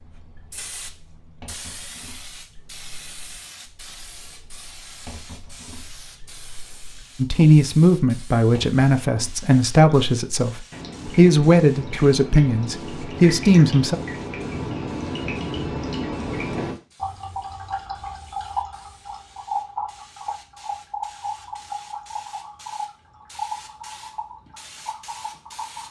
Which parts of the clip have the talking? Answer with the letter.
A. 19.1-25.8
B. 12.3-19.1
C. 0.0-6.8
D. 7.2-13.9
D.